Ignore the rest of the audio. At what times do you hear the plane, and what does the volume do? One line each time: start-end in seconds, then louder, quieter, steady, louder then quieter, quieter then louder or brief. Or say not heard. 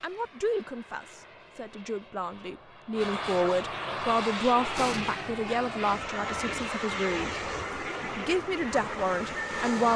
0.0-9.9 louder.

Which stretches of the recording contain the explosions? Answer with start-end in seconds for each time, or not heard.
4.8-5.3.